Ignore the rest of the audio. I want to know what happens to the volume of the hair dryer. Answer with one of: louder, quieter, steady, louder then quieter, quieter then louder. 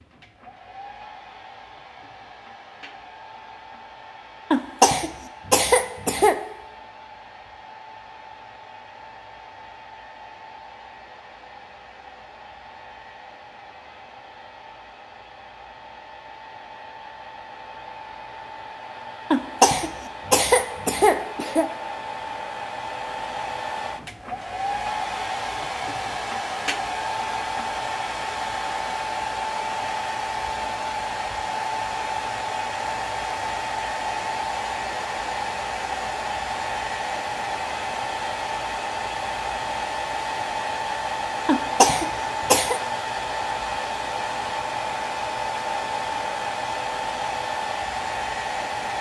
louder.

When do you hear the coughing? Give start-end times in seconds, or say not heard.
4.5-6.3, 19.3-21.6, 41.5-42.8.